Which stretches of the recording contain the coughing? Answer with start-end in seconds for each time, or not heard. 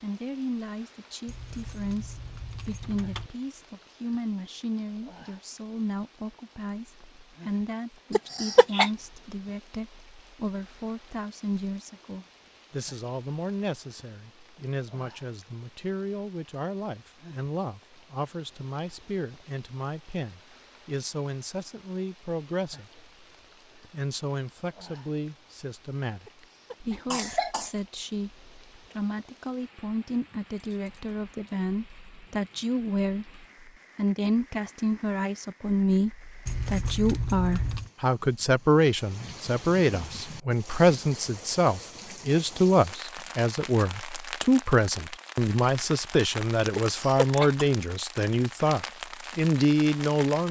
8.1-8.9, 26.2-27.8, 46.8-47.6.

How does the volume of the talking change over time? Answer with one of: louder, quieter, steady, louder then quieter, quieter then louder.
louder.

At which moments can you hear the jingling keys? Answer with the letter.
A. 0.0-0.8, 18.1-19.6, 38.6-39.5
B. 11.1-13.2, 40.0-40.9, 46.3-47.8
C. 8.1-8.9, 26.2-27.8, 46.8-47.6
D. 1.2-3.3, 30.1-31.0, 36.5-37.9
D.